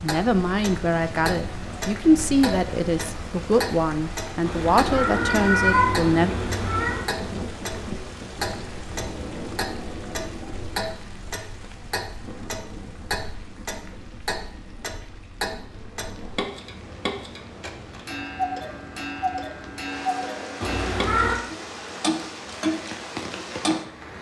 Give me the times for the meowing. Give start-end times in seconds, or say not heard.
4.5-7.2, 20.6-21.4.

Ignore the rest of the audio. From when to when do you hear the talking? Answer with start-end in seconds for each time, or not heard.
0.0-6.3.